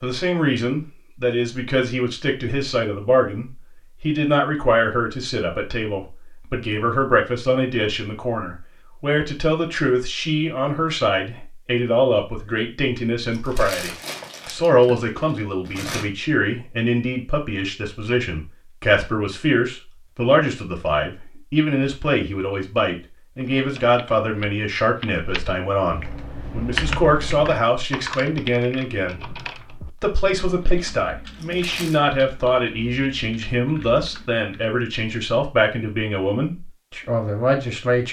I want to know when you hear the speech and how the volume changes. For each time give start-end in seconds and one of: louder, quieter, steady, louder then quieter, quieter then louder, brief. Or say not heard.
0.0-38.0 steady.